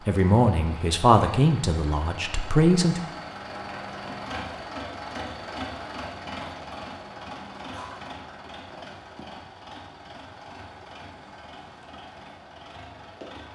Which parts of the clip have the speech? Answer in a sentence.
The speech can be heard from 0.1 to 3.0 s.